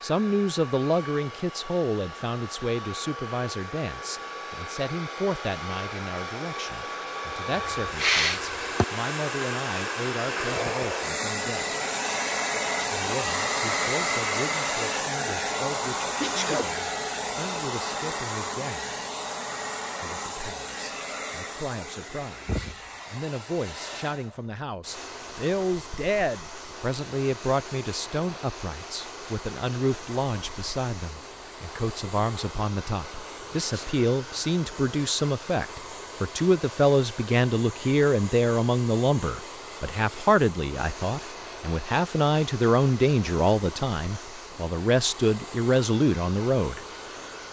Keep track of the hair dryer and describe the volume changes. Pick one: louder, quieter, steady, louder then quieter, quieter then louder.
louder then quieter.